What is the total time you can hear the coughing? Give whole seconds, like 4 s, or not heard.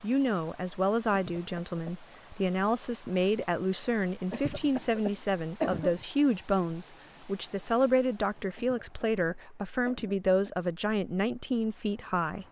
5 s.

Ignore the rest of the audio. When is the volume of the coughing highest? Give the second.
6 s.